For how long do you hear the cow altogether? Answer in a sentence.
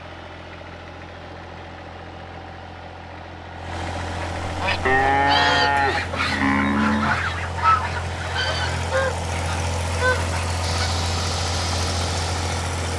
You can hear the cow for 2 seconds altogether.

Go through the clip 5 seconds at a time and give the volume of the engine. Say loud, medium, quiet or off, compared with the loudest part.
medium, loud, loud.